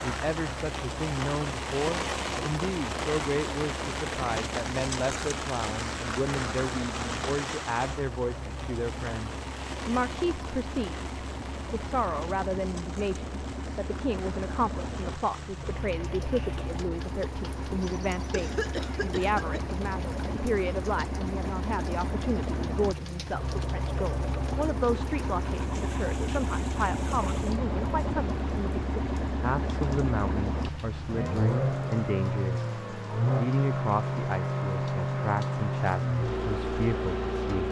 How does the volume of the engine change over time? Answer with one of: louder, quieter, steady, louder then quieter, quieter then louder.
louder.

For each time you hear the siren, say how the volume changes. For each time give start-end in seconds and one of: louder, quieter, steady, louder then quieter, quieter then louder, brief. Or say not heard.
not heard.